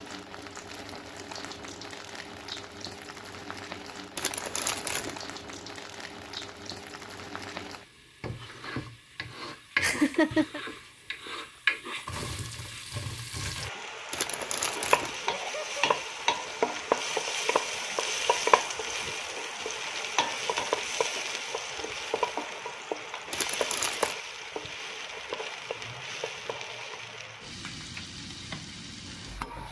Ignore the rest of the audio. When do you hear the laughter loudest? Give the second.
10 s.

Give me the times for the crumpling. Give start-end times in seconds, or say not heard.
4.2-5.2, 14.1-15.2, 23.3-24.1.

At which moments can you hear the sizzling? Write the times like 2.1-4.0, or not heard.
0.0-29.6.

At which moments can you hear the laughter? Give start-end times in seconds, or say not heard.
9.8-10.6, 15.2-15.8.